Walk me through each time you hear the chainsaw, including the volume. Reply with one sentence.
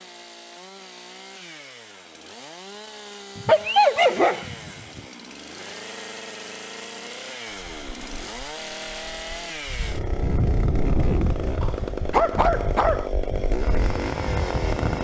You can hear the chainsaw from 0.0 to 15.0 s, getting louder.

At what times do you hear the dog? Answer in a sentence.
The dog can be heard from 3.4 to 5.0 s and from 11.6 to 13.1 s.